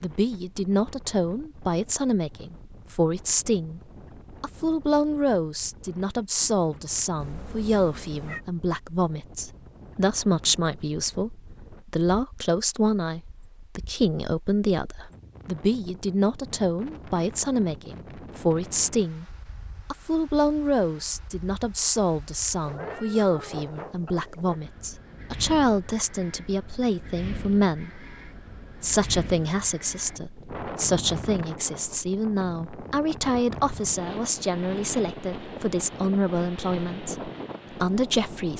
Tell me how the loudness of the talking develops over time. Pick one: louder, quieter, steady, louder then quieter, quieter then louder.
steady.